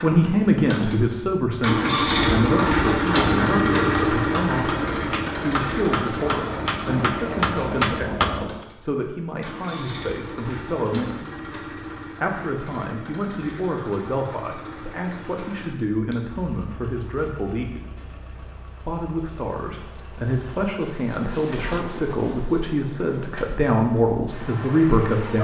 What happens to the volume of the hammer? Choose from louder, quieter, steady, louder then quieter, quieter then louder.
louder.